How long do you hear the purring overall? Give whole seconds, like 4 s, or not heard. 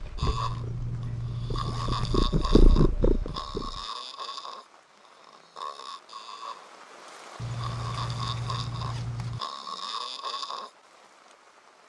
4 s.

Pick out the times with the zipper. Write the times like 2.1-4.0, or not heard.
0.2-2.2, 7.3-9.4.